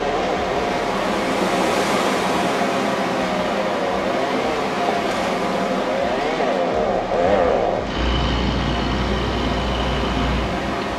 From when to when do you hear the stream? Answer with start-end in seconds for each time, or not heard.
0.0-10.9.